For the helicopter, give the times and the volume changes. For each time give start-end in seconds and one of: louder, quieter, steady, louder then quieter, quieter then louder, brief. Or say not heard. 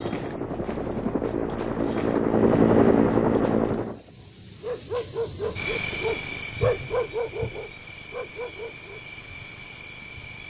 0.0-4.0 louder.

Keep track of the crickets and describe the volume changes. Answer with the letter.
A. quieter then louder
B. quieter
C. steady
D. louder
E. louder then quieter
E.